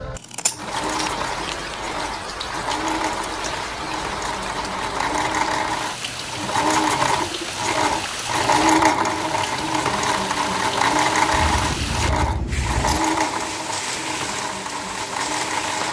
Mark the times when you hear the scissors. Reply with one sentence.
The scissors can be heard from 0.1 to 1.8 s and from 11.3 to 13.0 s.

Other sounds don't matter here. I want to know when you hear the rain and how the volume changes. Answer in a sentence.
The rain can be heard from 0.0 to 15.8 s, at a steady volume.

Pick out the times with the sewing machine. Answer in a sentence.
The sewing machine can be heard from 0.1 to 15.8 s.